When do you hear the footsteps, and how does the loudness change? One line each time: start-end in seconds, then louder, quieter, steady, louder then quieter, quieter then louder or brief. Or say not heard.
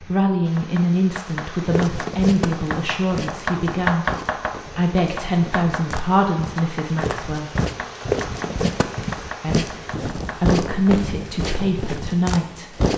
1.6-12.9 quieter then louder.